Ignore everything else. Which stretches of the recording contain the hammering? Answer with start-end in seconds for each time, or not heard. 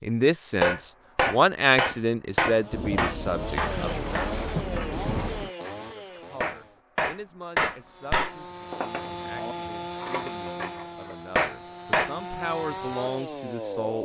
0.6-12.1.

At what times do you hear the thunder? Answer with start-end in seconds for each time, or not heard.
2.7-5.5.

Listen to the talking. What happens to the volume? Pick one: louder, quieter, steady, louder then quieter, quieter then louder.
quieter then louder.